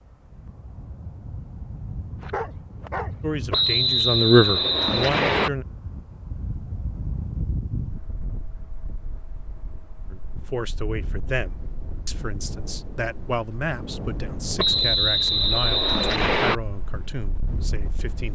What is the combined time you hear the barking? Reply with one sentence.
You can hear the barking for 2 seconds altogether.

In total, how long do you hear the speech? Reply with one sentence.
The speech can be heard for 11 seconds in total.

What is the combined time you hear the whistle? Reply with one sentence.
The whistle can be heard for 4 seconds in total.